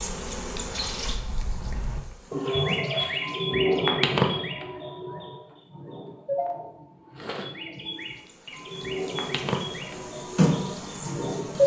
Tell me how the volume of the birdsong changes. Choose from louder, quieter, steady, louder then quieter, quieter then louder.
louder then quieter.